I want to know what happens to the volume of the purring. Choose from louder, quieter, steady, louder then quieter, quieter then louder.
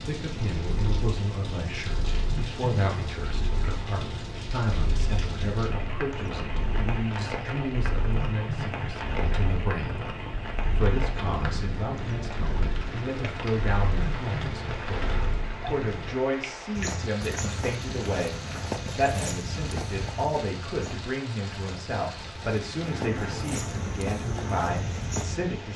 steady.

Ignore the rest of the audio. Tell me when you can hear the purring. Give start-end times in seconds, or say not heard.
0.0-16.1.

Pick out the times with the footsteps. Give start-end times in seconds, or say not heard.
16.8-25.4.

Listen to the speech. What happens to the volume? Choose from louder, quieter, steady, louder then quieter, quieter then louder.
steady.